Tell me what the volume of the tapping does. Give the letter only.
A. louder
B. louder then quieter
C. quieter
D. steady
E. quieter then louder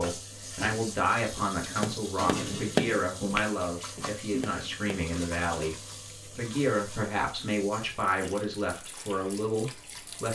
B.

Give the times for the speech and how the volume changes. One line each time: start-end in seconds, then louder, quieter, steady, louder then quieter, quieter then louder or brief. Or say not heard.
0.0-10.3 steady.